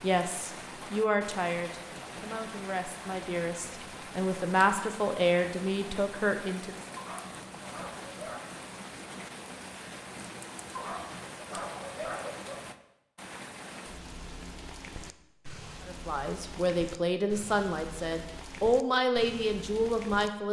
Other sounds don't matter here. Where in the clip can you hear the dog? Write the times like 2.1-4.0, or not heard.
7.0-8.5, 10.8-12.7.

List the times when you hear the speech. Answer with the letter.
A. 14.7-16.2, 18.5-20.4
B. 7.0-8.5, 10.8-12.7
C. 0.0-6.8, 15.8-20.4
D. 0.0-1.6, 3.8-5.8
C.